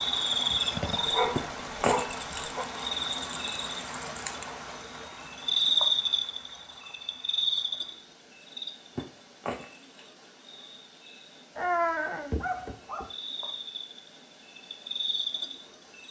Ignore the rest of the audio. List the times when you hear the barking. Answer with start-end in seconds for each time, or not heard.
0.9-2.6, 11.6-13.1.